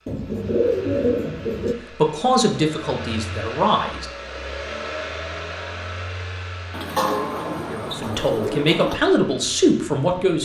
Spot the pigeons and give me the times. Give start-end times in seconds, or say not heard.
0.1-1.8, 6.7-9.0.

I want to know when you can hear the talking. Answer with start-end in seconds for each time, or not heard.
1.9-4.0, 7.7-10.4.